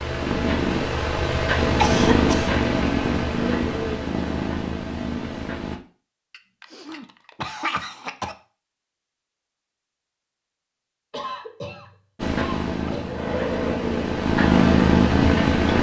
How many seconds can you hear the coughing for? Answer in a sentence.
You can hear the coughing for 5 seconds altogether.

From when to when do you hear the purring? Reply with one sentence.
You can hear the purring from 0.0 to 5.8 s and from 12.2 to 15.7 s.